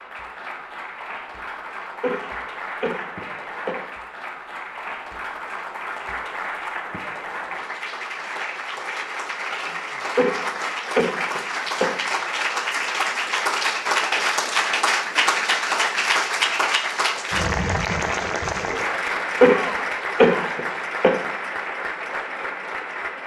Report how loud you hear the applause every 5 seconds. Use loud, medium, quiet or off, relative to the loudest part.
medium, medium, loud, loud, medium.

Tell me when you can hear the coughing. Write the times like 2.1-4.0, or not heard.
2.0-3.9, 10.2-12.0, 19.4-21.2.